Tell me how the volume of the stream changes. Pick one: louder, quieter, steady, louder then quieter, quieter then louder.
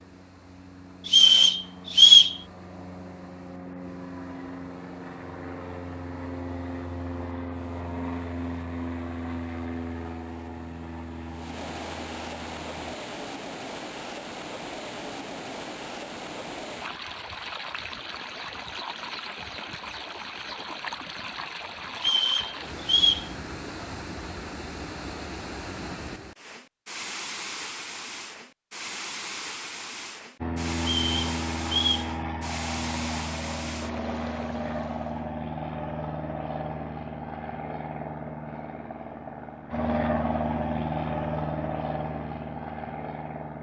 louder.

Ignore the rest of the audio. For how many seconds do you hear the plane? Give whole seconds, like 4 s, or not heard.
26 s.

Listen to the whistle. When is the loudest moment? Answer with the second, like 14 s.
2 s.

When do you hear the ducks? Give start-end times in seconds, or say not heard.
not heard.